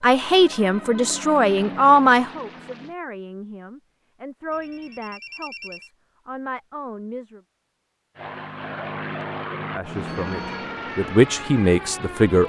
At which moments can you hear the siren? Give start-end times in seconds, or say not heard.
not heard.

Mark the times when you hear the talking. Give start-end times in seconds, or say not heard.
0.0-7.4, 9.7-12.4.